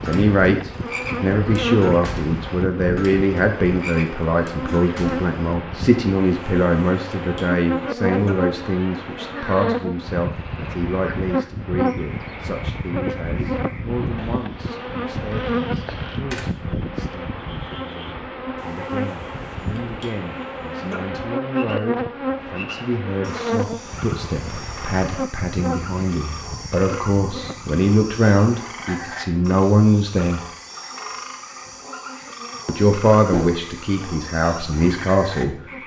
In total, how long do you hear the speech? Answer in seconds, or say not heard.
33 s.